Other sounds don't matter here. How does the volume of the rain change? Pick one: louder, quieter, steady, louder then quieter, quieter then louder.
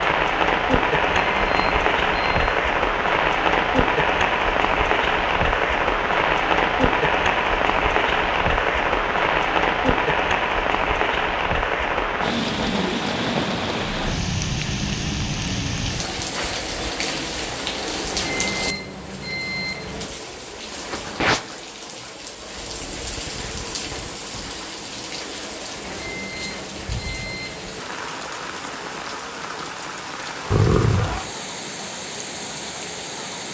quieter.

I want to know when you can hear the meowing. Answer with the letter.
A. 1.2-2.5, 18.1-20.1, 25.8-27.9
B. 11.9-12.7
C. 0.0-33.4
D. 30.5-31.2
D.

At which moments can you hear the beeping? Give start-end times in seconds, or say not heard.
1.2-2.5, 18.1-20.1, 25.8-27.9.